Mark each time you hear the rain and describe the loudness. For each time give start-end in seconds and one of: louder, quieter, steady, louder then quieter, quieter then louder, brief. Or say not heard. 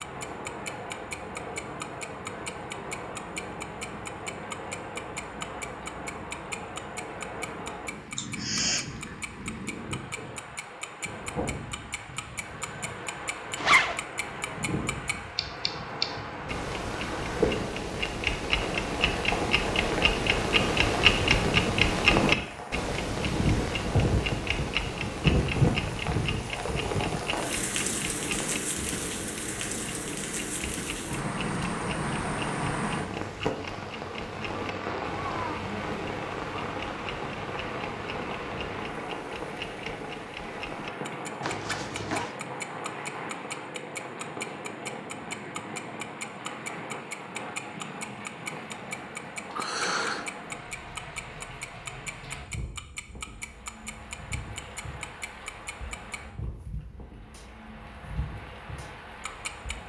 0.0-59.8 louder then quieter.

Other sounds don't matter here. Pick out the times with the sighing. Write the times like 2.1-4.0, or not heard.
8.2-8.8, 49.5-50.2.